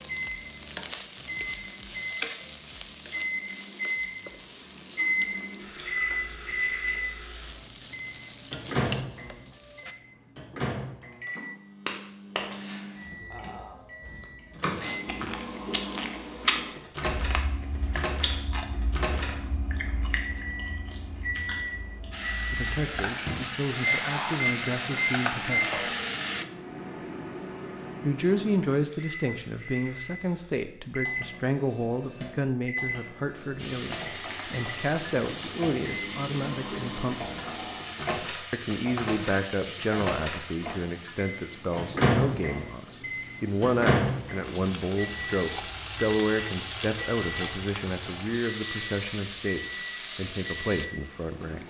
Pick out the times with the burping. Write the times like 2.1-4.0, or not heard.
13.3-13.8, 37.4-38.0.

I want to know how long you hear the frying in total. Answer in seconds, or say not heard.
32 s.